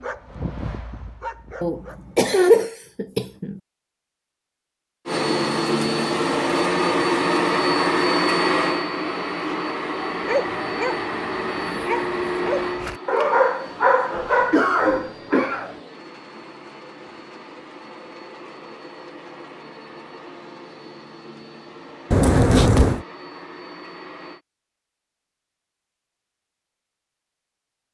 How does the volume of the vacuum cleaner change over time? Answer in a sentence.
The loudness of the vacuum cleaner goes down.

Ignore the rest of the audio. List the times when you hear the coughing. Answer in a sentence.
You can hear the coughing from 1.6 to 3.6 s, from 14.2 to 15.8 s and from 22.1 to 23.1 s.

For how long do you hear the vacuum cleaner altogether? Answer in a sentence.
You can hear the vacuum cleaner for 19 seconds altogether.